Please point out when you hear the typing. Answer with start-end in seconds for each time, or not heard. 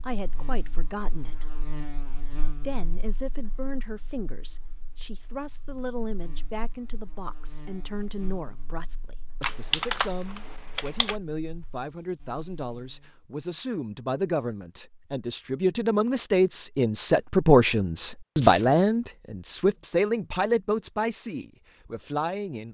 9.4-11.2.